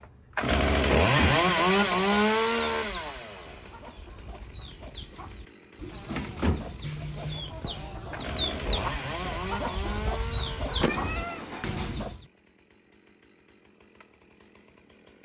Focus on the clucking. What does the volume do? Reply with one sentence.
The volume of the clucking goes up.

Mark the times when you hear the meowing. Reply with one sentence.
The meowing can be heard from 10.7 to 12.0 s.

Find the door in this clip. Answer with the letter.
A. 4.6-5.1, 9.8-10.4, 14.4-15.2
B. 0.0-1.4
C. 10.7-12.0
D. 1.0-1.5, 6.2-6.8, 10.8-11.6
D.